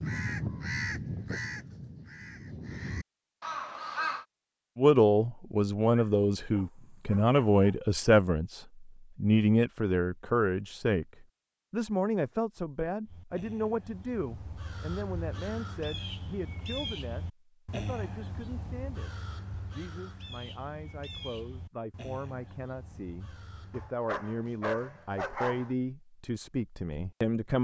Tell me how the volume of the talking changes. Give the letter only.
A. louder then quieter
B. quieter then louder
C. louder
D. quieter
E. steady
B.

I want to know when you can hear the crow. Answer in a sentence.
The crow can be heard from 0.0 to 4.2 s and from 13.1 to 23.9 s.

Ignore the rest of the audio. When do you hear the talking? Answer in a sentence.
You can hear the talking from 4.8 to 27.5 s.